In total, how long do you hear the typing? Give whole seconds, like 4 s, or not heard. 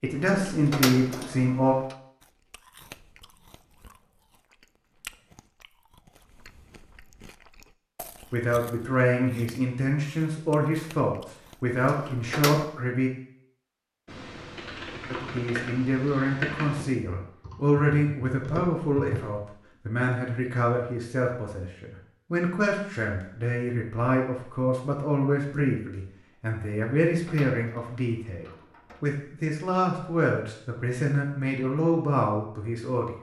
5 s.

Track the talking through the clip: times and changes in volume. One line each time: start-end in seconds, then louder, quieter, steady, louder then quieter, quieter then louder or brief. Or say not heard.
0.0-1.8 brief
8.3-13.1 steady
15.1-33.1 steady.